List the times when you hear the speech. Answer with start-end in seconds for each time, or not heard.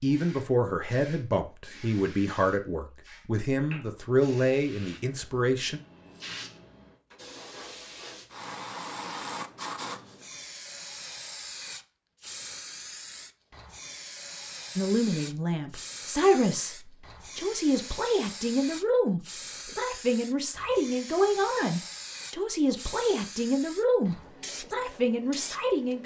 0.0-5.8, 14.8-26.0.